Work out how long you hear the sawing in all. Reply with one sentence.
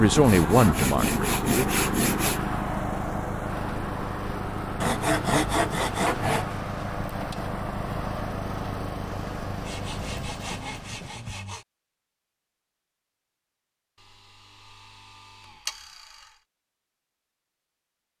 The sawing can be heard for 8 seconds in total.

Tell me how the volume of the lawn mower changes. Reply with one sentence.
The loudness of the lawn mower goes down.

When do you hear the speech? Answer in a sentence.
The speech can be heard from 0.0 to 1.7 s.